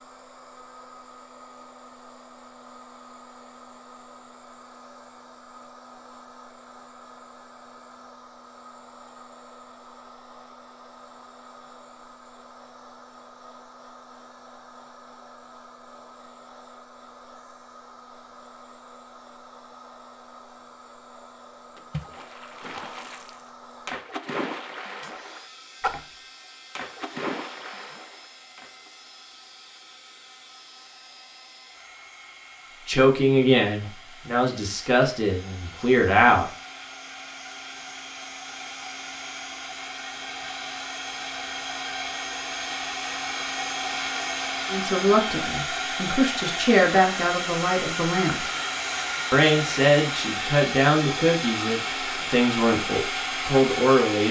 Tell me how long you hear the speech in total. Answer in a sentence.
You can hear the speech for 12 seconds altogether.